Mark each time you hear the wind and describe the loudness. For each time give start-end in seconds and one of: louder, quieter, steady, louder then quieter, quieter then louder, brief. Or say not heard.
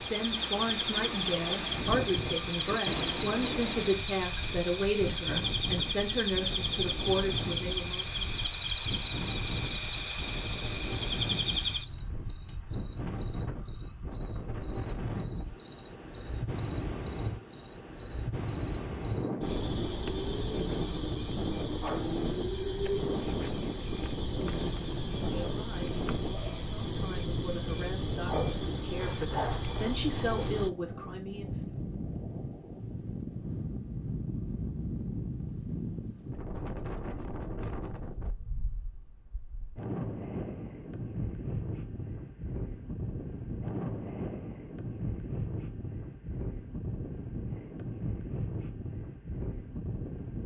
0.0-50.4 steady.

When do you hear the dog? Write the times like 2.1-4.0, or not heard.
not heard.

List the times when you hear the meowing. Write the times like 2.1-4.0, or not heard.
not heard.